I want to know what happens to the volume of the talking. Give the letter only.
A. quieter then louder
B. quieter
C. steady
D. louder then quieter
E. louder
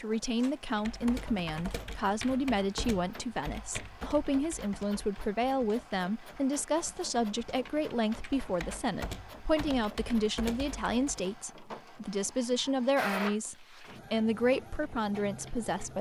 C.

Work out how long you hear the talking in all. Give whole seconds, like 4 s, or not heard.
16 s.